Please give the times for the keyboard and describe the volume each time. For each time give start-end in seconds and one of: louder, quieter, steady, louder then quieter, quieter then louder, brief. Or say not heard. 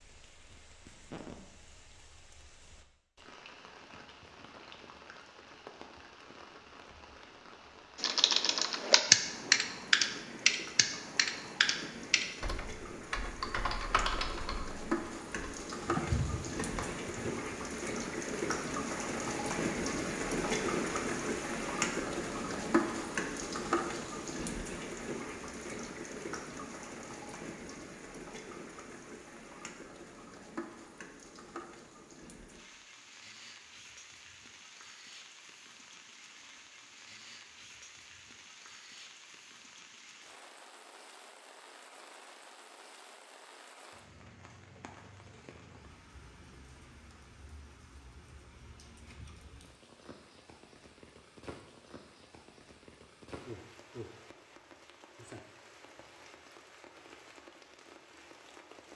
8.0-17.6 quieter.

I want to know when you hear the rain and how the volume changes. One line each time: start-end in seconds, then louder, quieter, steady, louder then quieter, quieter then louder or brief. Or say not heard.
0.0-58.9 louder then quieter.